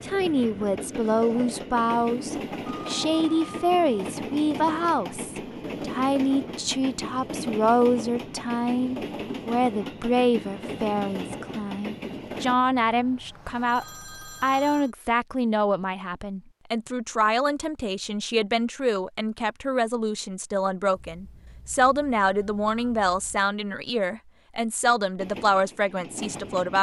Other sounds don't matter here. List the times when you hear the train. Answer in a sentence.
The train can be heard from 0.0 to 12.6 s and from 25.1 to 26.7 s.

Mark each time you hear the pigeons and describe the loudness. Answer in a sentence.
The pigeons can't be heard in this clip.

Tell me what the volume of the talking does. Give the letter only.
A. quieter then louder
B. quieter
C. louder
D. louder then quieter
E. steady
E.